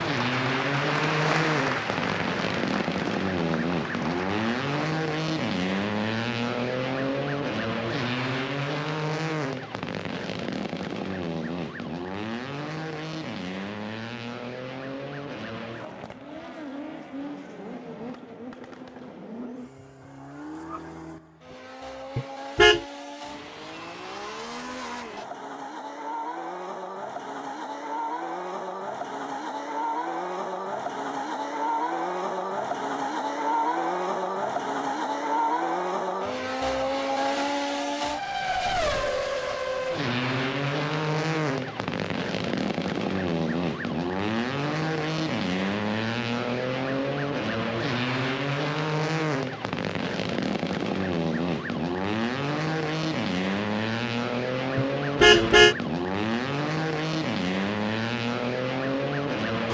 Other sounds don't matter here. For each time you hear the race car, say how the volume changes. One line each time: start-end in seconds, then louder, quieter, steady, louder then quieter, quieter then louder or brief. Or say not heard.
0.0-59.7 quieter then louder.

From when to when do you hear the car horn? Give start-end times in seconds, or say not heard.
22.1-22.9, 54.8-55.8.